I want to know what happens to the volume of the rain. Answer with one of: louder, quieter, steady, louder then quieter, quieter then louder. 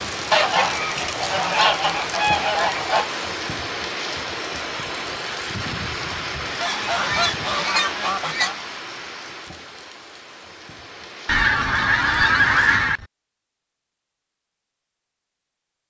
quieter.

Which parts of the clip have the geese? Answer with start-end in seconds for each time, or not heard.
0.3-3.1, 6.6-8.6, 11.2-13.1.